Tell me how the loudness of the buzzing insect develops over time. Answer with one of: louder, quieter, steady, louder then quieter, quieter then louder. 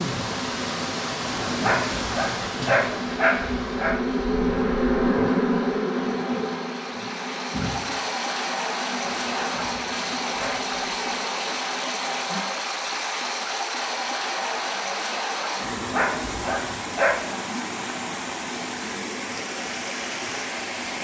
louder then quieter.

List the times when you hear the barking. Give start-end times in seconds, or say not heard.
1.4-3.9, 9.2-10.6, 15.6-17.1.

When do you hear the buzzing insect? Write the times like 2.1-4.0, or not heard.
0.0-12.4.